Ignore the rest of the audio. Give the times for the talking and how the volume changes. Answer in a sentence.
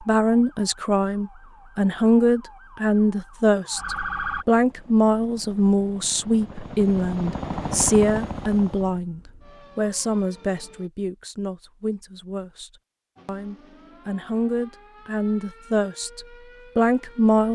The talking can be heard from 0.0 to 17.5 s, getting quieter then louder.